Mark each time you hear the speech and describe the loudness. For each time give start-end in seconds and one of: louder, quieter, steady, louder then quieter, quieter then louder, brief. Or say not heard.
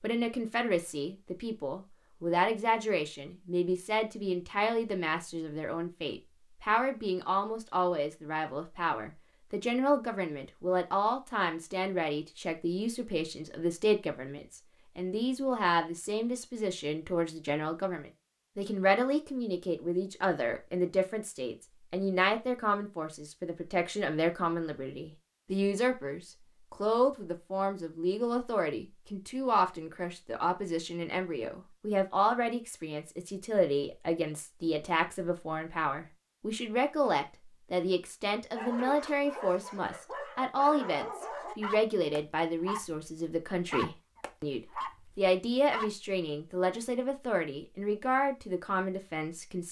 0.0-49.6 steady.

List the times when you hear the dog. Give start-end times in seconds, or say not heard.
38.5-45.9.